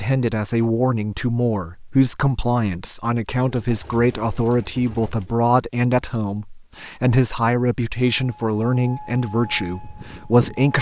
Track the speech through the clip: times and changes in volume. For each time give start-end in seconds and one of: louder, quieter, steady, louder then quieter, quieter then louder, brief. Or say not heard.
0.0-10.7 steady.